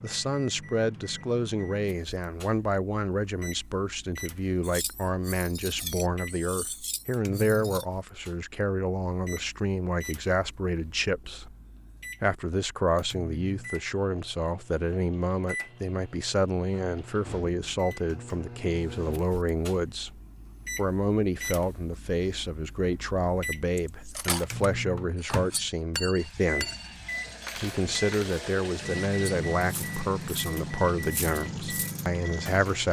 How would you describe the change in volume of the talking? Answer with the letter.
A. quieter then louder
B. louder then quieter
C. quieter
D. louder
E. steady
E.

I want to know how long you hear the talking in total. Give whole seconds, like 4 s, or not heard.
31 s.